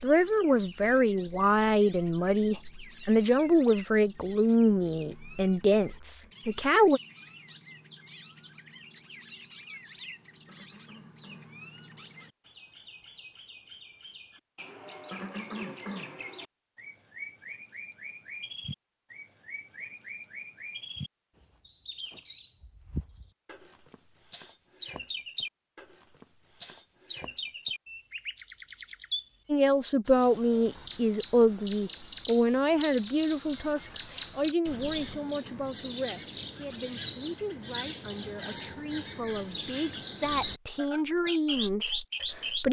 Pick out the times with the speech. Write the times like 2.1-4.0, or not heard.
0.0-7.0, 29.4-42.6.